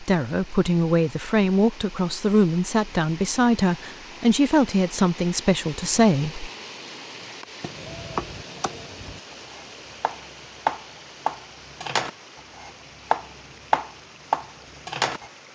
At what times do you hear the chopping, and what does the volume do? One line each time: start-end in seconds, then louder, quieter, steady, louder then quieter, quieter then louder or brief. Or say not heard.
7.6-15.3 louder.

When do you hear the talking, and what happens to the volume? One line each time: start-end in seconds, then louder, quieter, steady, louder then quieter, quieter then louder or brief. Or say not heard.
0.0-6.5 steady.